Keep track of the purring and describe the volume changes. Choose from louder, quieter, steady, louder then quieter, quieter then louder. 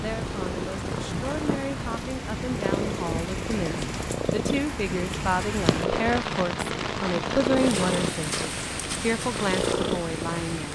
steady.